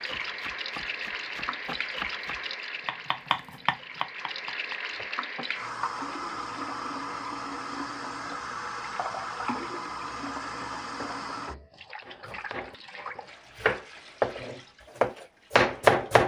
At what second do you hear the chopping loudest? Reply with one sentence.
The volume of the chopping peaks at 16 seconds.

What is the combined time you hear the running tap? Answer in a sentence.
You can hear the running tap for 16 seconds altogether.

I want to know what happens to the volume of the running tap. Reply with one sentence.
The volume of the running tap goes down.